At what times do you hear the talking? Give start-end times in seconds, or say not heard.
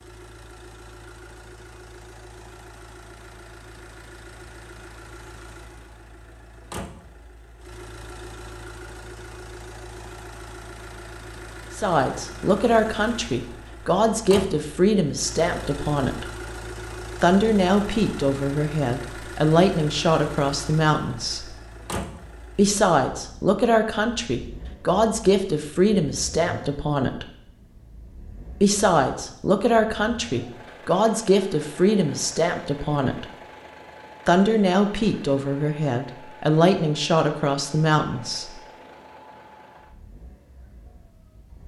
11.8-16.2, 17.2-21.6, 22.6-27.2, 28.6-33.2, 34.2-38.6.